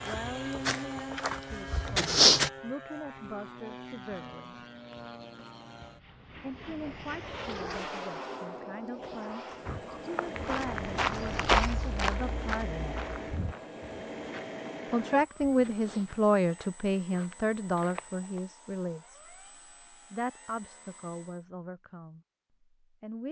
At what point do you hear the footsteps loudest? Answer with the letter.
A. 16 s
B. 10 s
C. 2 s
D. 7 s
C.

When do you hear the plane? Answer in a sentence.
The plane can be heard from 0.0 to 21.4 s.